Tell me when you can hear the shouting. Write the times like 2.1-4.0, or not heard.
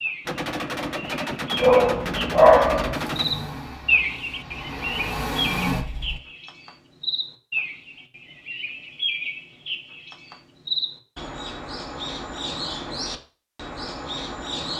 not heard.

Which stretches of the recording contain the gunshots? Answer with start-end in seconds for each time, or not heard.
0.2-3.3.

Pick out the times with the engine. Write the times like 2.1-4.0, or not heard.
2.9-6.2.